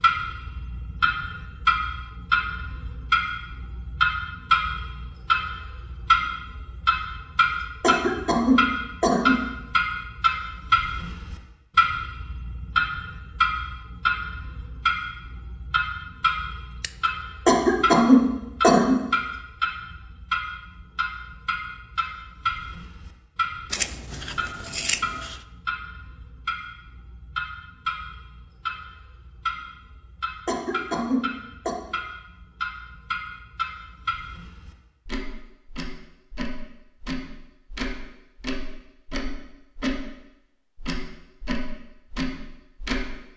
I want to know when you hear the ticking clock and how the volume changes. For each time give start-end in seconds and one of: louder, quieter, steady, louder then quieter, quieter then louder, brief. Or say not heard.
0.0-40.0 quieter
40.8-43.0 brief.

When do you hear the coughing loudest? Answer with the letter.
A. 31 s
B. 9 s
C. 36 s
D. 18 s
D.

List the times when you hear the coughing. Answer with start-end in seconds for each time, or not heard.
7.8-9.4, 17.4-18.9, 30.4-31.8.